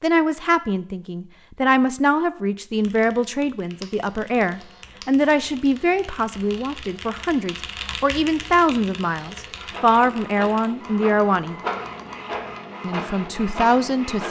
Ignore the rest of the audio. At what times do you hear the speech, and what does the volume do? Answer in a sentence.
The speech can be heard from 0.0 to 11.6 s, at a steady volume; and briefly from 12.8 to 14.2 s.